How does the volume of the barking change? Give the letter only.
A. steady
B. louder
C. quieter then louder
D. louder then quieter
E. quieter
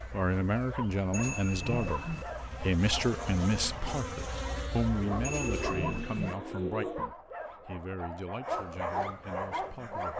B.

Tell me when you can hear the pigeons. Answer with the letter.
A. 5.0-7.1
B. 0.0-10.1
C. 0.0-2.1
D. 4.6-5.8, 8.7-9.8
A.